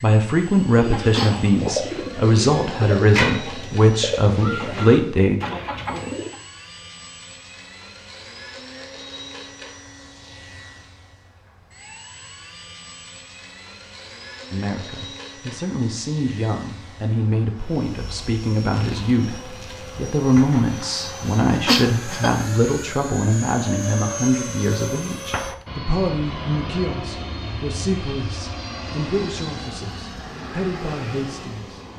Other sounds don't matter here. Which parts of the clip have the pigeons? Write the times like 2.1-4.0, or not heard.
0.8-6.4.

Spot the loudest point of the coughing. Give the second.
22 s.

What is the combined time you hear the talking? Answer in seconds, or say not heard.
23 s.